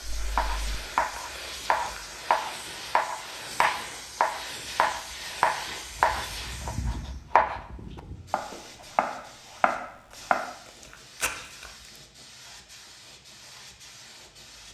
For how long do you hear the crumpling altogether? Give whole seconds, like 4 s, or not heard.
3 s.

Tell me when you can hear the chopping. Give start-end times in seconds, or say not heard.
0.0-10.6.